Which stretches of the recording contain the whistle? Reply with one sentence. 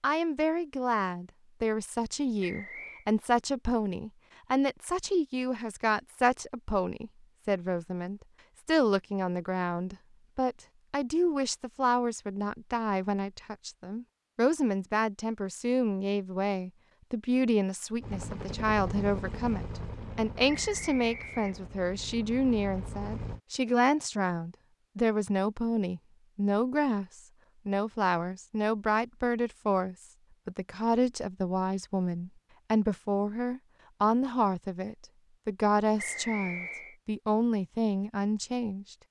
The whistle can be heard from 2.4 to 3.0 s, from 20.4 to 21.7 s and from 36.0 to 37.0 s.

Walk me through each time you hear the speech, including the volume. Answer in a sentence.
The speech can be heard from 0.0 to 39.0 s, at a steady volume.